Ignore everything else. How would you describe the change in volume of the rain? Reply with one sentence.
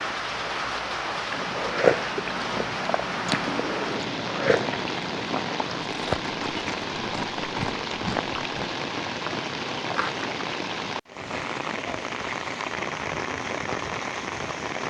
The volume of the rain stays about the same.